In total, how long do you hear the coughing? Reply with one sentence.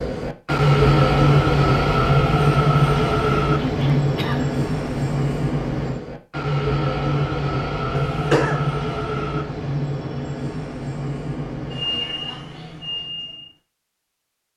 You can hear the coughing for 2 seconds altogether.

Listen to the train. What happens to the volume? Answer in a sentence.
The volume of the train goes down.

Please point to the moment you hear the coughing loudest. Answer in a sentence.
The volume of the coughing peaks at 8 seconds.